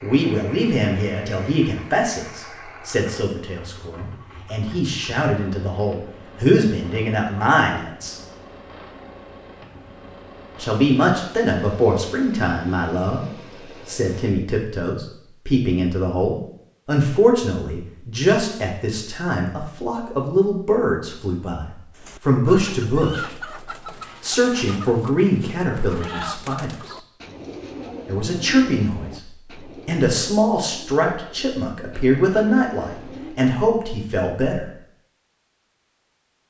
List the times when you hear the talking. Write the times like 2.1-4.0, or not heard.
0.0-8.2, 10.6-23.5, 24.2-26.9, 28.1-34.7.